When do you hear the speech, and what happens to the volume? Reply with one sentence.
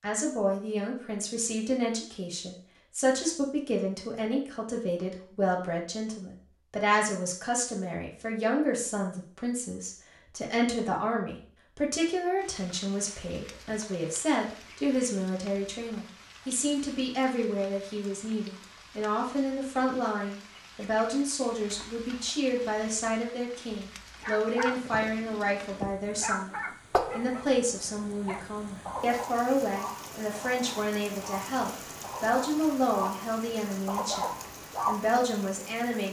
You can hear the speech from 0.0 to 34.2 s, at a steady volume; and briefly from 34.9 to 36.0 s.